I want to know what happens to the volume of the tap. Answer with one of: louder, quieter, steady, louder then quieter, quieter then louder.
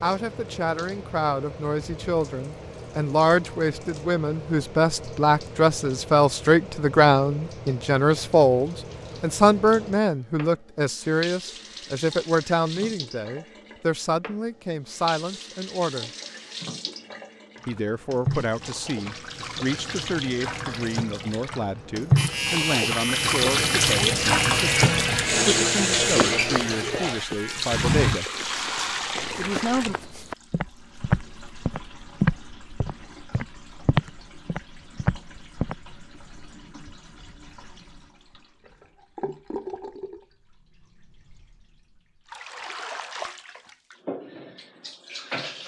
louder then quieter.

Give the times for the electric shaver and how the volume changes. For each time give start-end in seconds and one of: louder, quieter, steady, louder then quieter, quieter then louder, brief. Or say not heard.
22.1-29.0 quieter.